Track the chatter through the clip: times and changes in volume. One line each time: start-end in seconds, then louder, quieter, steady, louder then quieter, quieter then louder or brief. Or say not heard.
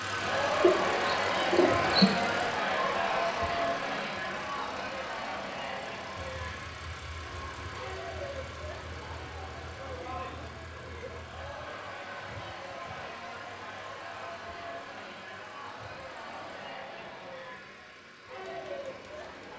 0.0-19.5 quieter.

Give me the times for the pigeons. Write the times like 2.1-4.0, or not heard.
0.6-2.1.